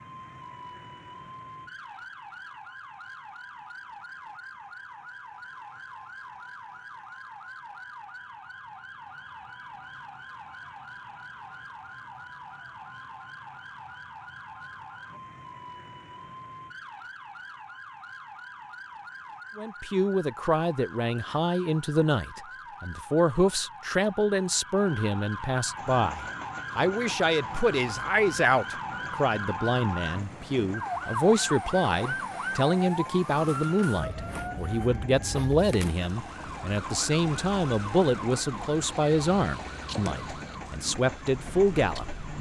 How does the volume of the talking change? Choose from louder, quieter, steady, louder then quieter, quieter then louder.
steady.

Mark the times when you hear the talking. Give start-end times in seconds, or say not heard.
19.6-42.3.